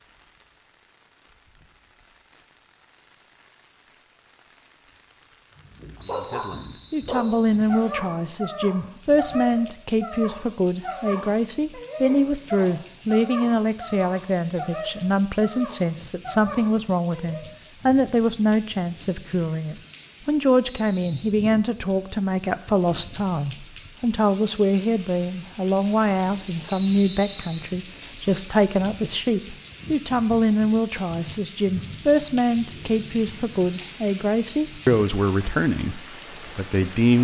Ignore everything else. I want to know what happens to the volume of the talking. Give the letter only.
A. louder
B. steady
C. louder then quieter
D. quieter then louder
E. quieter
B.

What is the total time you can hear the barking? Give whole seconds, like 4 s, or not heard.
12 s.